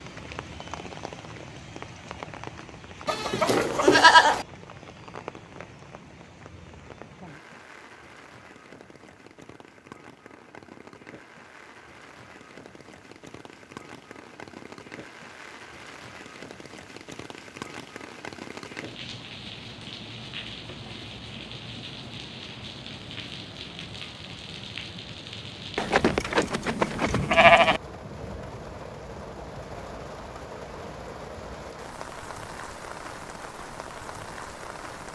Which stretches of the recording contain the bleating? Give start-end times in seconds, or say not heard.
3.0-4.5, 25.8-27.8.